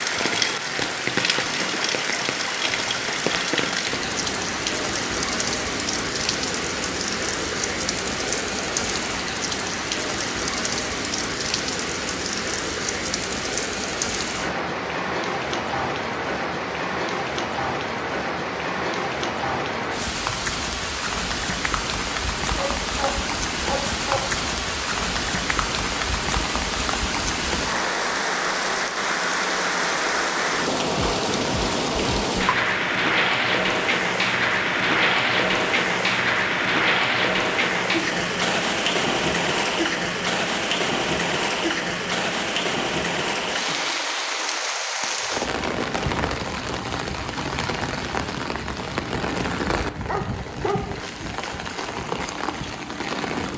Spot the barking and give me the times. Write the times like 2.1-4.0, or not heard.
22.6-24.3, 50.0-51.4.